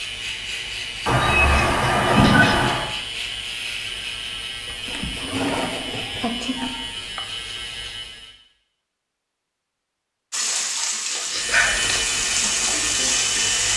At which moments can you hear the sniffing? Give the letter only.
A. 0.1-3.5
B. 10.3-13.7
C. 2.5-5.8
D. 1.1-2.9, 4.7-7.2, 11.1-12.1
D.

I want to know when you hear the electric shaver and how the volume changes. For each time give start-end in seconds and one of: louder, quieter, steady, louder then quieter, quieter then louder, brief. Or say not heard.
0.0-8.3 steady
11.3-13.7 brief.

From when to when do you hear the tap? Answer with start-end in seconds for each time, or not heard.
10.3-13.7.